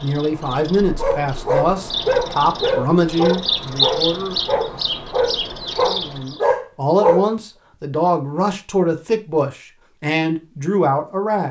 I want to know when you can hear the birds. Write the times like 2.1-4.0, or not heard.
0.0-6.5.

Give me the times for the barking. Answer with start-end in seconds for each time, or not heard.
1.0-7.2.